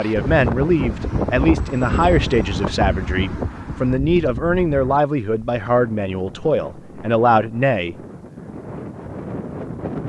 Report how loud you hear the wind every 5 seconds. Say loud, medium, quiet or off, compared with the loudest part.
loud, medium.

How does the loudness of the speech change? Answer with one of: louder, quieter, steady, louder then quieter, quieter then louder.
steady.